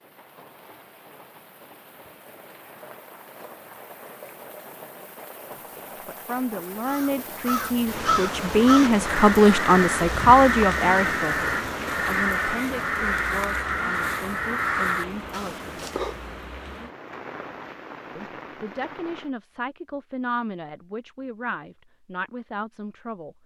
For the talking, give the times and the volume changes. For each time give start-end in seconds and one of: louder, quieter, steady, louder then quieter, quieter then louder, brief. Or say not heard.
6.0-15.7 louder then quieter
18.1-23.4 steady.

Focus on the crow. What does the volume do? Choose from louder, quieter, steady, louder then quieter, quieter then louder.
steady.